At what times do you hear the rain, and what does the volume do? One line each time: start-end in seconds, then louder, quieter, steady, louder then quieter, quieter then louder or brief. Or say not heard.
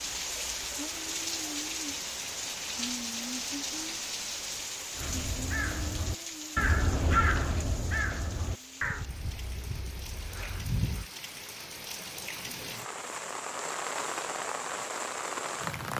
0.0-15.9 quieter then louder.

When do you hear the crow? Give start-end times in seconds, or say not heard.
5.0-11.1.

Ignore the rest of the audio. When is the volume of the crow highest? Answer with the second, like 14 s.
7 s.